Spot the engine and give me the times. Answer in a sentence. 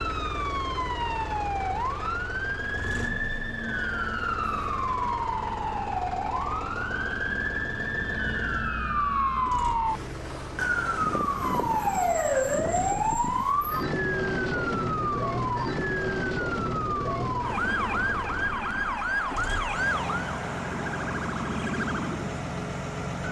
You can hear the engine from 0.0 to 23.2 s.